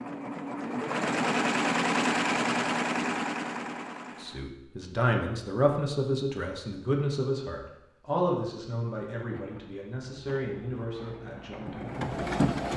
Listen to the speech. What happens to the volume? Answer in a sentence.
The loudness of the speech goes down.